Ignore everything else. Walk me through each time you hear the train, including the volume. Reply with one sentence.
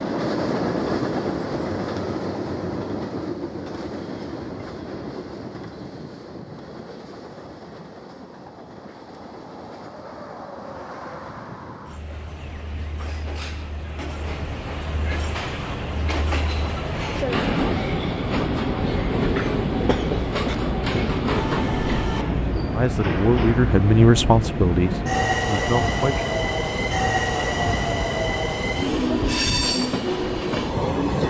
You can hear the train from 0.0 to 31.2 s, getting quieter then louder.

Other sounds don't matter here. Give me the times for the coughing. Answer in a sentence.
The coughing can be heard from 19.4 to 20.6 s.